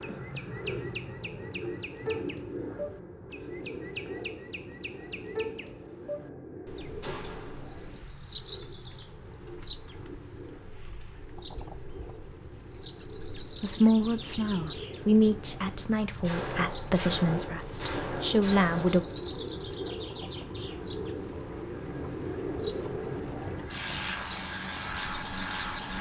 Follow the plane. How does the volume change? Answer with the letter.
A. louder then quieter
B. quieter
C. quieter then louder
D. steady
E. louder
C.